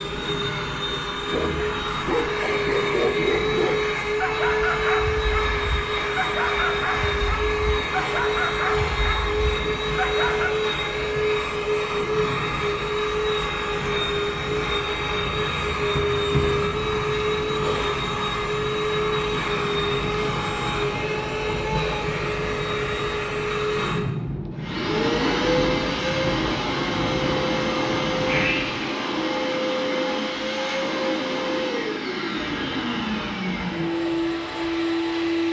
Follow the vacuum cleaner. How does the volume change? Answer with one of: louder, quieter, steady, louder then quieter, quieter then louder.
steady.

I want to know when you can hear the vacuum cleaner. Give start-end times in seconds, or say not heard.
0.0-35.4.